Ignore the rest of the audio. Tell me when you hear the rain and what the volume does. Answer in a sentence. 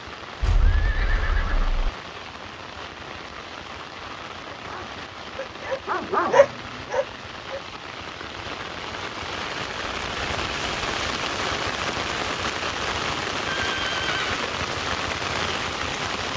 You can hear the rain from 0.0 to 16.3 s, getting louder.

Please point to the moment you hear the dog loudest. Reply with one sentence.
The volume of the dog peaks at 6 seconds.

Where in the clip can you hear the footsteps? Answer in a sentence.
You can't hear the footsteps here.